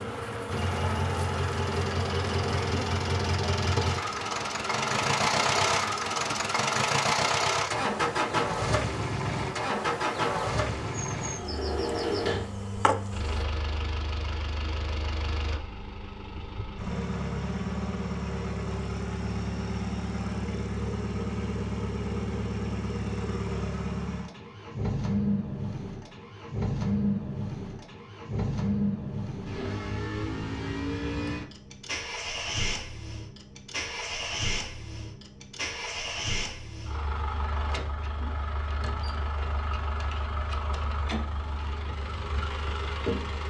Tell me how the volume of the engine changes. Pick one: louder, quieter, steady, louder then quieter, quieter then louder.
quieter.